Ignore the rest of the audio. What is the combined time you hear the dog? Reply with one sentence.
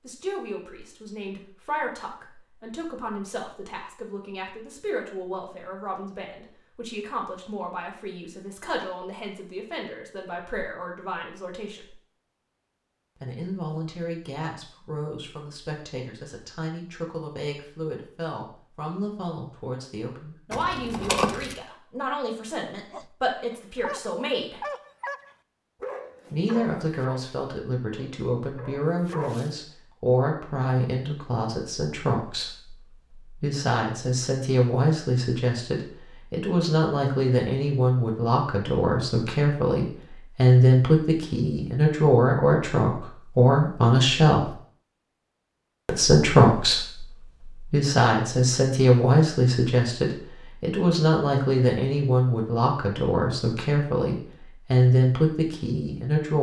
The dog can be heard for 7 seconds in total.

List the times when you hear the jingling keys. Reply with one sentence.
The jingling keys can be heard from 20.5 to 21.6 s.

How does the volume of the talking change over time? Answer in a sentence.
The loudness of the talking goes up.